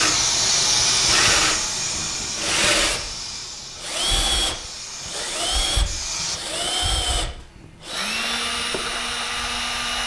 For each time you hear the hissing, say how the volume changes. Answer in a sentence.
You can hear the hissing from 0.0 to 6.4 s, getting quieter.